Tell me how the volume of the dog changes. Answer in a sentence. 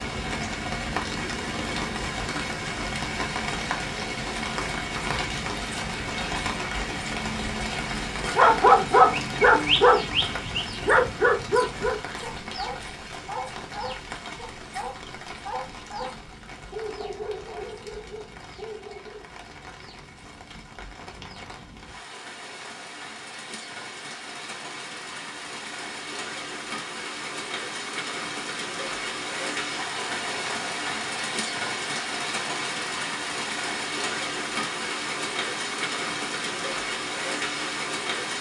The loudness of the dog goes down.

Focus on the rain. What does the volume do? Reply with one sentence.
The volume of the rain goes down, then up.